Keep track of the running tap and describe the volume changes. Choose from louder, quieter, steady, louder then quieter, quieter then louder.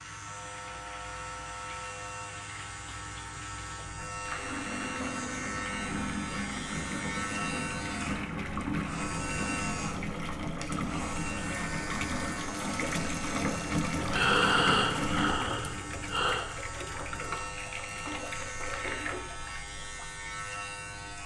louder then quieter.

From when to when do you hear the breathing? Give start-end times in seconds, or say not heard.
13.9-16.4.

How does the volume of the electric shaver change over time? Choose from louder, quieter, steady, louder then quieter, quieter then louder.
steady.